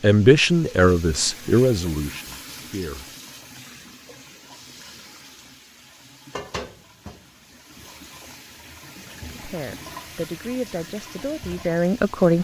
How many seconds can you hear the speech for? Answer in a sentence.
The speech can be heard for 6 seconds in total.